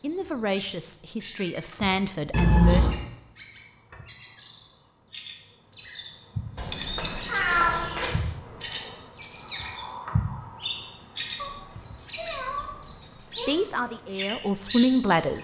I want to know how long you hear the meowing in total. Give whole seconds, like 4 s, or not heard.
5 s.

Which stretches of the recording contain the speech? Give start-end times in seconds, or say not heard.
0.0-2.9, 13.4-15.3.